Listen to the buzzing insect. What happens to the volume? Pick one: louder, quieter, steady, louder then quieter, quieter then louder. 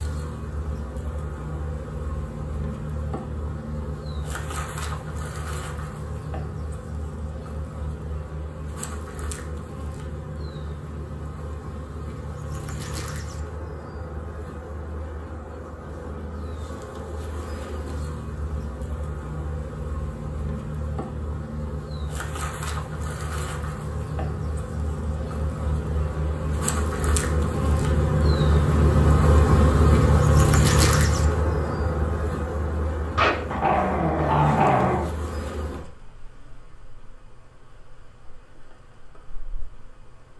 louder then quieter.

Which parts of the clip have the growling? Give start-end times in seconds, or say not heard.
33.1-35.1.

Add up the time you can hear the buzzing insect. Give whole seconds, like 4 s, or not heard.
40 s.